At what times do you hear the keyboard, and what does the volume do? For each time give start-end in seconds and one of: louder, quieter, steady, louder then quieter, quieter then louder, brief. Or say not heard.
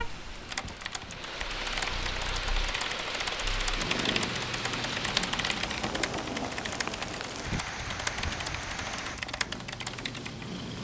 0.5-10.4 steady.